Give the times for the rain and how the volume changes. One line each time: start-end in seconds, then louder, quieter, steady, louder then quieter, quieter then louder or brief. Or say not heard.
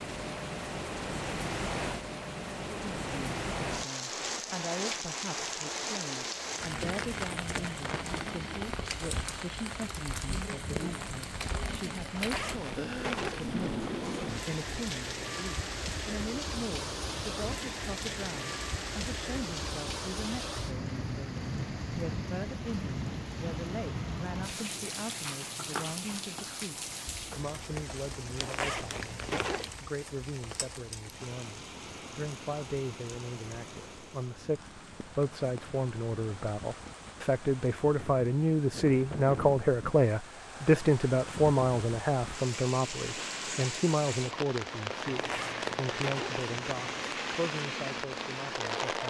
0.0-49.0 quieter then louder.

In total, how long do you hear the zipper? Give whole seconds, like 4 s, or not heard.
6 s.